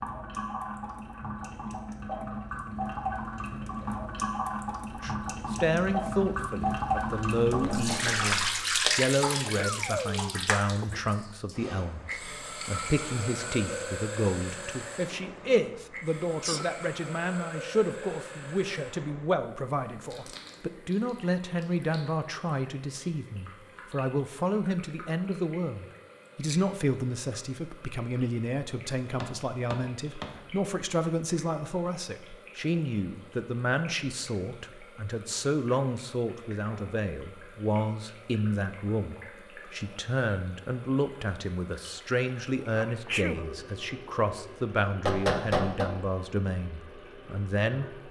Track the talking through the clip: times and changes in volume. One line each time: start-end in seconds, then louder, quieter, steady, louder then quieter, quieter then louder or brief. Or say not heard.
5.0-48.0 steady.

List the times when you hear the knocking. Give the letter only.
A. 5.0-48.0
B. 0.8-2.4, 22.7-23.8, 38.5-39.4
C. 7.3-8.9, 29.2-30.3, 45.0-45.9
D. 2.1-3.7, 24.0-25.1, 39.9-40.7
C.